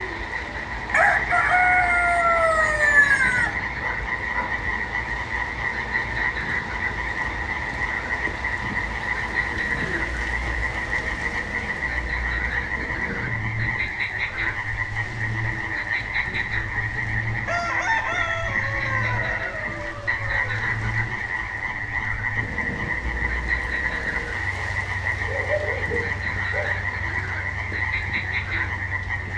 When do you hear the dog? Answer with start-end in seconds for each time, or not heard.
3.8-4.5, 25.2-26.9.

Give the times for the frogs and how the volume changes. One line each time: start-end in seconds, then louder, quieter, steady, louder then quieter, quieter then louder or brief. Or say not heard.
0.0-29.3 steady.